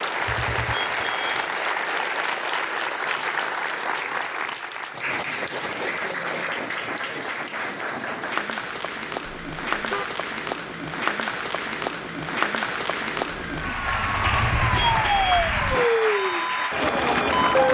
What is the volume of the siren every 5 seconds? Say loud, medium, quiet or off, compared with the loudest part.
off, off, medium, loud.